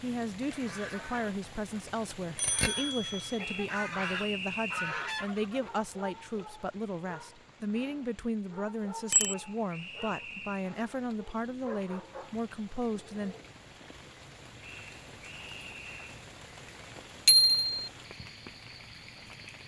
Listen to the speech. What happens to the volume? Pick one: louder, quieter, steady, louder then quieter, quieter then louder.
steady.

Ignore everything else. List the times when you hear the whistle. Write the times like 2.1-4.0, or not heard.
3.4-5.0, 9.1-10.8, 14.6-16.1.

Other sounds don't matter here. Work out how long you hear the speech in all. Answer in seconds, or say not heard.
13 s.